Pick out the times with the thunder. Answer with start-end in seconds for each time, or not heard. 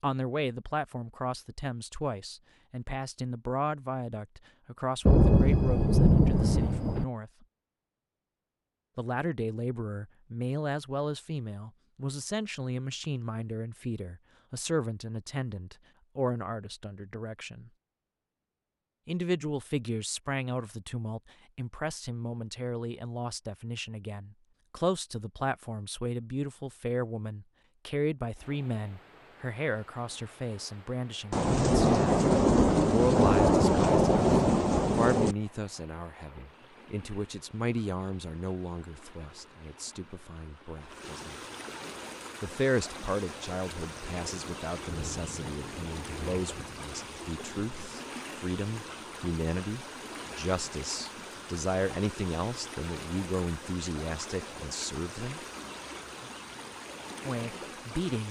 5.0-7.0, 31.3-35.4, 43.8-48.0.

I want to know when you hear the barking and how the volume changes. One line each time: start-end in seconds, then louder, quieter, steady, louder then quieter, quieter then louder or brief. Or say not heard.
not heard.